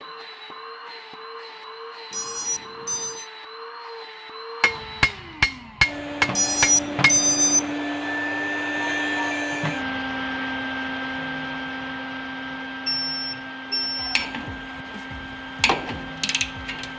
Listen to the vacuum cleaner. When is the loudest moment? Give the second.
9 s.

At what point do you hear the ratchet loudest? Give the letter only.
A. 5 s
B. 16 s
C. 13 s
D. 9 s
B.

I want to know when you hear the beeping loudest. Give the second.
7 s.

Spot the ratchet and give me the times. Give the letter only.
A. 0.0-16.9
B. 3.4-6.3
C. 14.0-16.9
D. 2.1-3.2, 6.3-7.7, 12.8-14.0
C.